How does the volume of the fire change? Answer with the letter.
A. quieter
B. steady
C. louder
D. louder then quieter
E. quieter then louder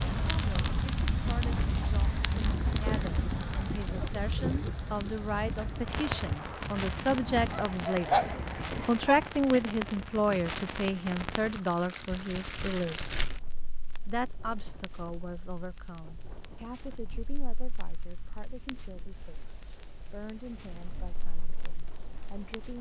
A.